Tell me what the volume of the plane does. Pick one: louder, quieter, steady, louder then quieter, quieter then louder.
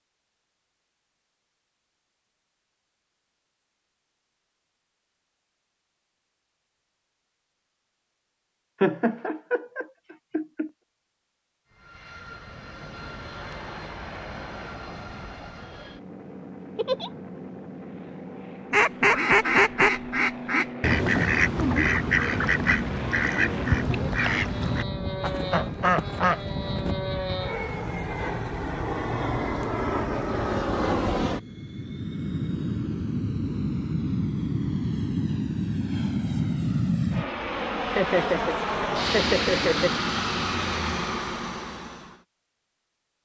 louder.